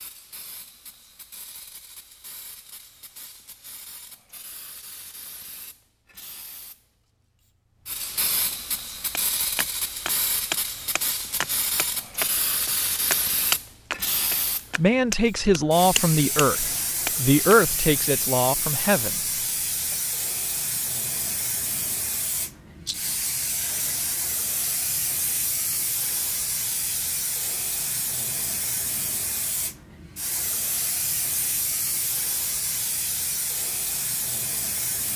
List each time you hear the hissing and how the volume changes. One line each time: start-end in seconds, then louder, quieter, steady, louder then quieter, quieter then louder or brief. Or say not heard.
0.0-35.1 louder.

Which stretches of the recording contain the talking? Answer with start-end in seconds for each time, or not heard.
14.8-19.2.